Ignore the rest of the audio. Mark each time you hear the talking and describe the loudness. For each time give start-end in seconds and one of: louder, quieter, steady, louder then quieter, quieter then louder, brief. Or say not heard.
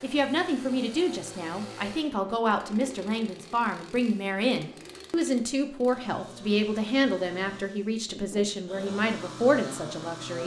0.0-10.4 steady.